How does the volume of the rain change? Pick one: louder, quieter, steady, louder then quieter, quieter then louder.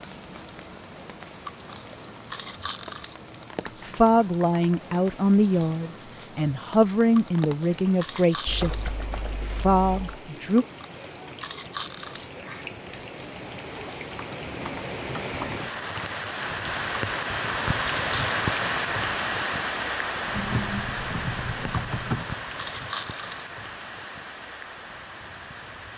louder then quieter.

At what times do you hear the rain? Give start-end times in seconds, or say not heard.
0.0-25.9.